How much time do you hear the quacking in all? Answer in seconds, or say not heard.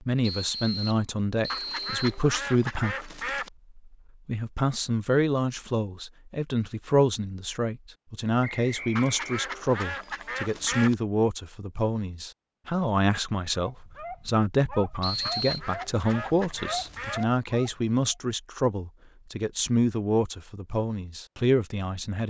6 s.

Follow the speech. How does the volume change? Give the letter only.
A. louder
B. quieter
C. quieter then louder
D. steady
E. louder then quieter
D.